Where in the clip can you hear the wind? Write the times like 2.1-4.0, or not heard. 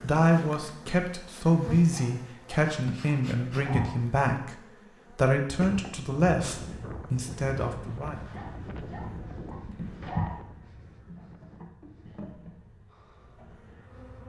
5.6-14.2.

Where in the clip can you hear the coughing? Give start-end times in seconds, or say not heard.
not heard.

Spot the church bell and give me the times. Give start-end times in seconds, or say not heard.
not heard.